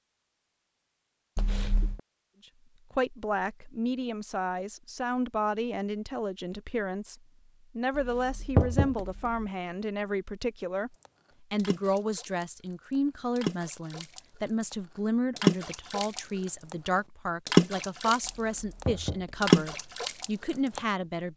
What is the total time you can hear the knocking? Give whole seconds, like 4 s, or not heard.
3 s.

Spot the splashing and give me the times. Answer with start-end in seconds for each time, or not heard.
11.6-12.4, 13.3-14.2, 15.3-16.5, 17.4-18.3, 19.4-20.8.